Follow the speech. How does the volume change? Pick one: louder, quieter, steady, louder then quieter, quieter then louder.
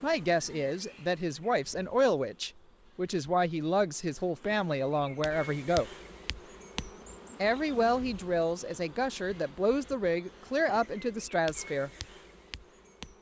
steady.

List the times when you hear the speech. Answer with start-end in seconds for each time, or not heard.
0.0-5.9, 7.4-11.9.